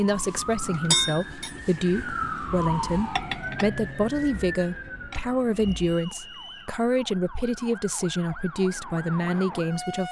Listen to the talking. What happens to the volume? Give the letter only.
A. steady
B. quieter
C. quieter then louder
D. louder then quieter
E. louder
A.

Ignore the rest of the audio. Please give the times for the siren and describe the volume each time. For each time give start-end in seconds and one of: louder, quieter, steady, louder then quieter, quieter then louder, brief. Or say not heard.
0.0-10.0 quieter then louder.